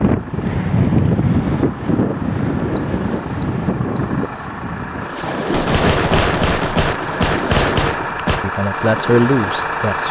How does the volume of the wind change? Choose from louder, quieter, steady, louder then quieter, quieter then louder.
quieter.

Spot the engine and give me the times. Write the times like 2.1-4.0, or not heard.
0.0-10.0.